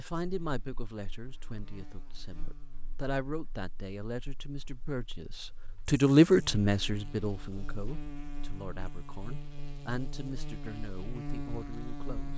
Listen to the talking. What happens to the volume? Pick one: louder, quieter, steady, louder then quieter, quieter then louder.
louder then quieter.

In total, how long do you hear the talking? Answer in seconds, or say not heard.
12 s.